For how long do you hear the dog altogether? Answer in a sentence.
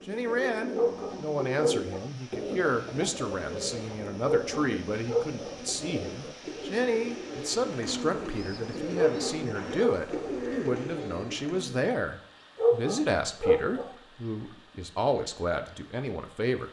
You can hear the dog for 5 seconds altogether.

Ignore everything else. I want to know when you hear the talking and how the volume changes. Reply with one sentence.
The talking can be heard from 0.1 to 16.6 s, at a steady volume.